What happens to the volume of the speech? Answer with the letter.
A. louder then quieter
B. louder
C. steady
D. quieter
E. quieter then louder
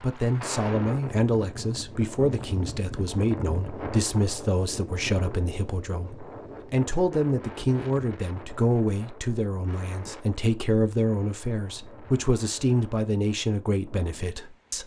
C.